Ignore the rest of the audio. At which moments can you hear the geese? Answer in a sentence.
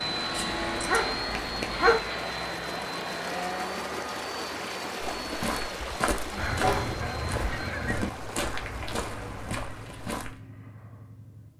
The geese can be heard from 6.3 to 8.2 s.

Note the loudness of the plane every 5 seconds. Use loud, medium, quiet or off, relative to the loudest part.
loud, medium, quiet.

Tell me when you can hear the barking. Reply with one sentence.
You can hear the barking from 0.3 to 2.0 s and from 6.5 to 7.0 s.